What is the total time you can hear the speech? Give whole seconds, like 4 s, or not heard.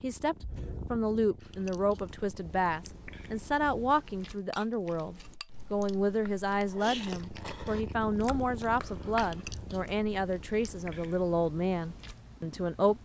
13 s.